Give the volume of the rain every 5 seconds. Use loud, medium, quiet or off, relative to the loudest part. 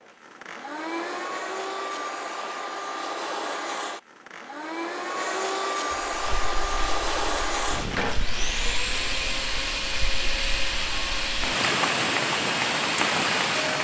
off, medium, loud.